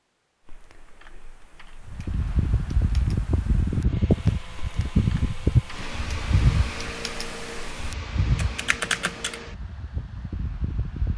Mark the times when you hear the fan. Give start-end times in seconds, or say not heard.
1.9-11.1.